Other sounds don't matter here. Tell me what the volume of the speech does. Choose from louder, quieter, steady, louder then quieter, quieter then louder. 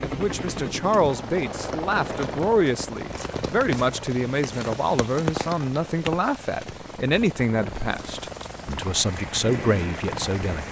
steady.